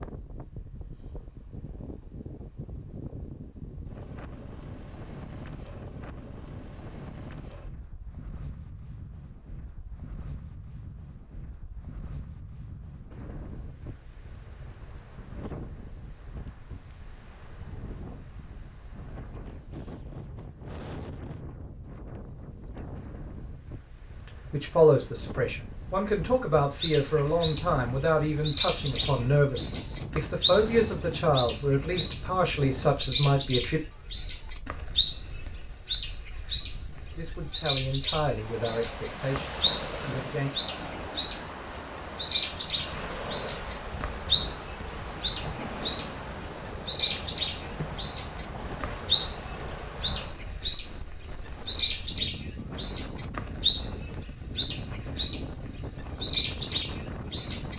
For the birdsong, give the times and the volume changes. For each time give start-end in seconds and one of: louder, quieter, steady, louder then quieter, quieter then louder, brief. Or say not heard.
26.8-57.7 steady.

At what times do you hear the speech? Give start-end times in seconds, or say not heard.
24.2-33.8, 36.6-40.5.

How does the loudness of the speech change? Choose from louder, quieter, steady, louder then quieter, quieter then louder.
quieter.